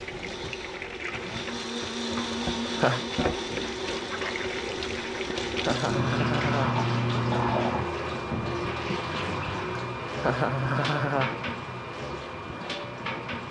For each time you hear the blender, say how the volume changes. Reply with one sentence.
The blender can be heard from 0.0 to 6.2 s, getting louder then quieter.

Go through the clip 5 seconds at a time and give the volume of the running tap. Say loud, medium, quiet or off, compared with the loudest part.
medium, loud, medium.